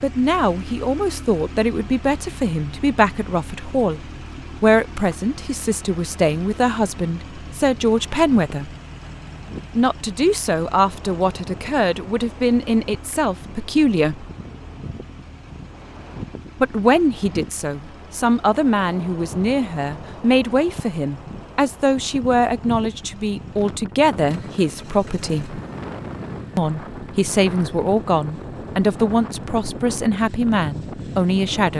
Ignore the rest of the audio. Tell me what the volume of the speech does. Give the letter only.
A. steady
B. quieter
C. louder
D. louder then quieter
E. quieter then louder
A.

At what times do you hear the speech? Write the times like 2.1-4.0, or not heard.
0.0-8.7, 9.8-14.2, 16.6-25.6, 26.6-31.7.